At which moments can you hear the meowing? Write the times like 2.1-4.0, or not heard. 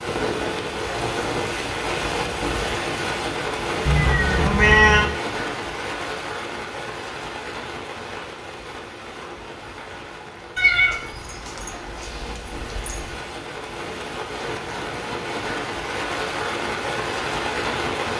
3.9-5.1, 10.6-13.2.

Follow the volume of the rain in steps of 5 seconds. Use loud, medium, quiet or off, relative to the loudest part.
loud, medium, medium, loud.